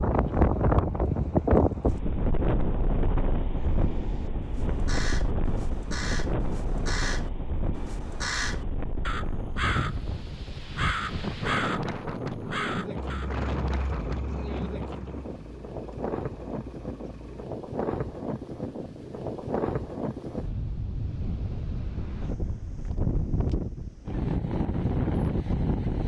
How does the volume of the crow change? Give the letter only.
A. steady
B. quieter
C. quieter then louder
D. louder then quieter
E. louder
E.